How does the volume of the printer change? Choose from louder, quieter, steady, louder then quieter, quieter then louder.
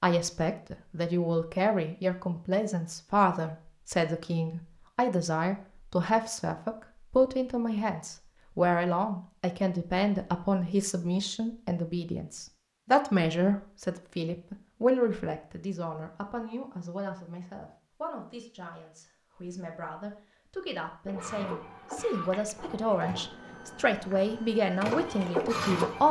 quieter then louder.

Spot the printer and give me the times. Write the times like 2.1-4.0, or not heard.
21.1-26.0.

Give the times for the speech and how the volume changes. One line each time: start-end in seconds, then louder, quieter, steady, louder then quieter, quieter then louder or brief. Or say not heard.
0.0-26.0 quieter then louder.